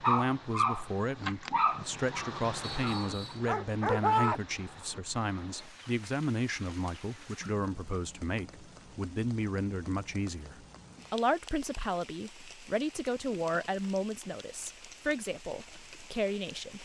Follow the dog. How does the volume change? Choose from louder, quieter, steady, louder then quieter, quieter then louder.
quieter then louder.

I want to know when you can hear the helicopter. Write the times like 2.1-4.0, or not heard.
not heard.